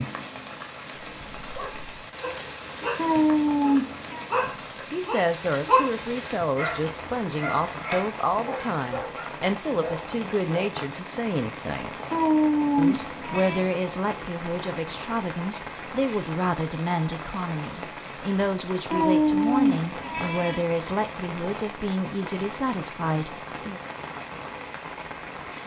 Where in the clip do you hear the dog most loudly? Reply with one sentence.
The volume of the dog peaks at 6 seconds.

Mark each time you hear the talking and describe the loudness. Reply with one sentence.
The talking can be heard from 4.3 to 11.9 s, at a steady volume; and from 12.8 to 23.8 s, at a steady volume.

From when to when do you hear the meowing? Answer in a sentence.
The meowing can be heard from 3.0 to 4.2 s, from 12.1 to 13.6 s and from 18.9 to 20.6 s.